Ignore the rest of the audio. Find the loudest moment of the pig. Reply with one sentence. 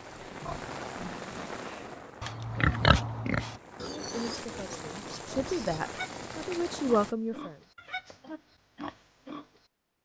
The volume of the pig peaks at 3 seconds.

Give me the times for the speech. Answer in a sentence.
The speech can be heard from 4.0 to 7.6 s.